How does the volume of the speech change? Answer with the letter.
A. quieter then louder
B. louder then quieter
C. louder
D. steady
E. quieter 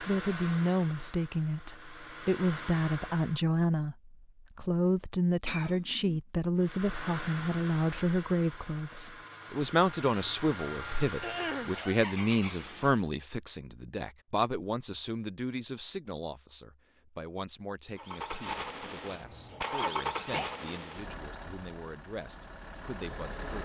E.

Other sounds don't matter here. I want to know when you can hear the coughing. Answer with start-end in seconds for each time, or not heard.
5.5-6.2, 11.2-11.8, 19.5-20.6.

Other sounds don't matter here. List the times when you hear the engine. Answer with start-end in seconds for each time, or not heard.
0.0-3.5, 6.6-13.1, 17.9-23.6.